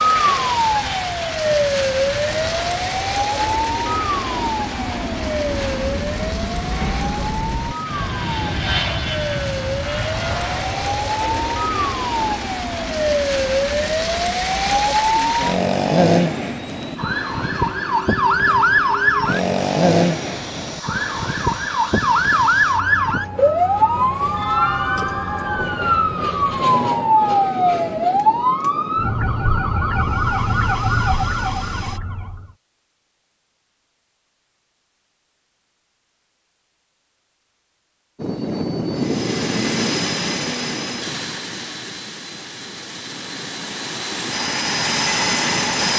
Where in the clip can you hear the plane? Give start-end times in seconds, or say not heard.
0.0-32.0, 38.1-45.9.